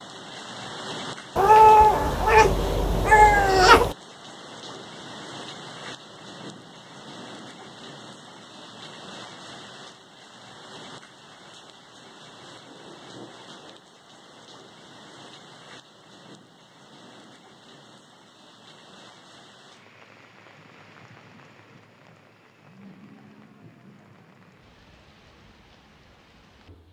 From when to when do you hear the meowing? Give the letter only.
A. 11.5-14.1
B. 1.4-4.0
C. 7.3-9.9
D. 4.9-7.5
B.